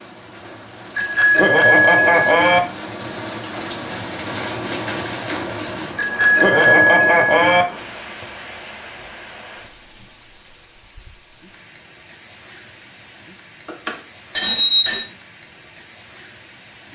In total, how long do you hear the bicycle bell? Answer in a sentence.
The bicycle bell can be heard for 5 seconds in total.